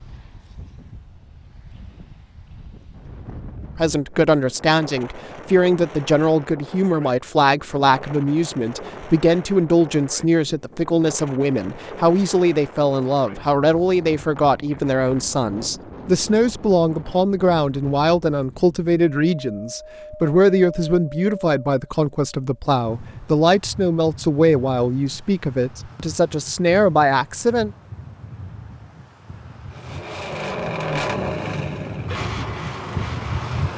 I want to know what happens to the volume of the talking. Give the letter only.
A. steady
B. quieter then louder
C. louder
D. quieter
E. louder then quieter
A.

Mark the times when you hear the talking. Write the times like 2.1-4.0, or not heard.
3.8-27.7.